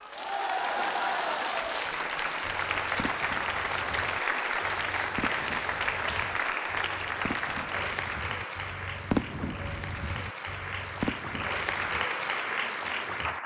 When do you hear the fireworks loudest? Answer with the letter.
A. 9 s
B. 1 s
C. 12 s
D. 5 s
A.